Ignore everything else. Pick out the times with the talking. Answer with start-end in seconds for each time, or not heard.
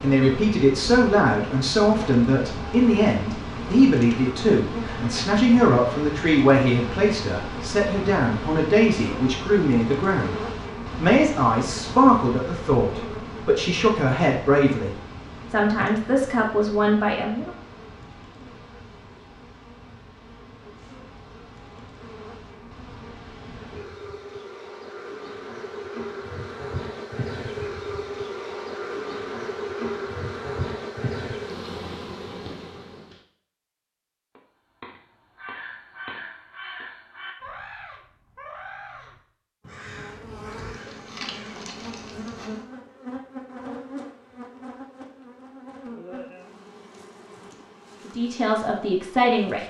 0.0-17.5, 48.0-49.6.